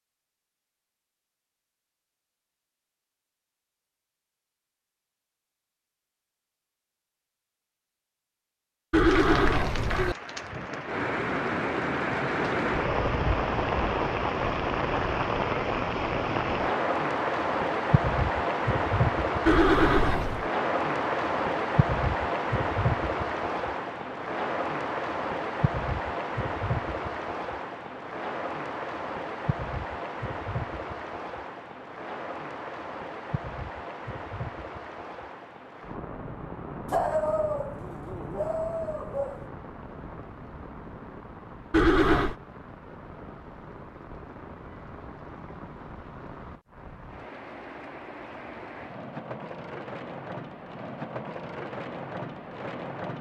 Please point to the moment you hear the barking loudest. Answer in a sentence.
The volume of the barking peaks at 37 seconds.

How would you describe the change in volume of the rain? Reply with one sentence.
The volume of the rain goes down.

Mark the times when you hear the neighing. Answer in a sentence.
You can hear the neighing from 8.9 to 10.2 s, from 19.4 to 20.5 s and from 41.7 to 42.4 s.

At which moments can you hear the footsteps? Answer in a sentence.
The footsteps can't be heard in this clip.